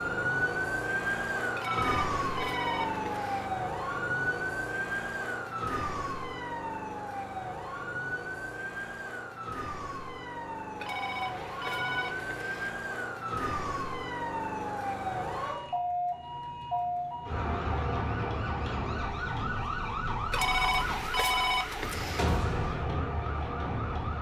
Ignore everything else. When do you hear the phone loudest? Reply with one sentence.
The volume of the phone peaks at 21 seconds.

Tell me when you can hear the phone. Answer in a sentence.
You can hear the phone from 1.6 to 3.5 s, from 10.8 to 12.8 s and from 20.3 to 22.2 s.